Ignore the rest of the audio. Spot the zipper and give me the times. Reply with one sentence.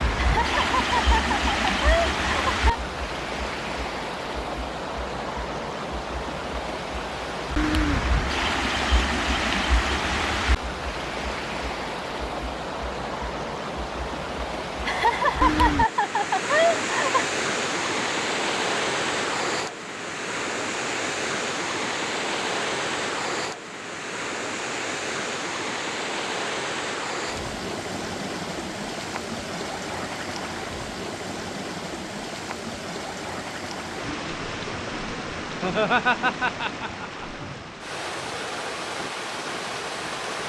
The zipper can't be heard in this clip.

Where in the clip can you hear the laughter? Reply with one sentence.
The laughter can be heard from 0.1 to 2.8 s, from 14.8 to 17.2 s and from 35.6 to 37.2 s.